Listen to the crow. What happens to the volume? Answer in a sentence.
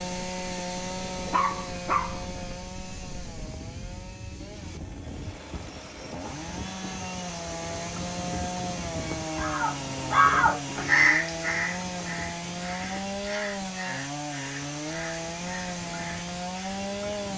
The volume of the crow goes down.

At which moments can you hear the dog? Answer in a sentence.
The dog can be heard from 1.3 to 2.2 s.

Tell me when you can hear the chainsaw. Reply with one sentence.
You can hear the chainsaw from 0.0 to 17.3 s.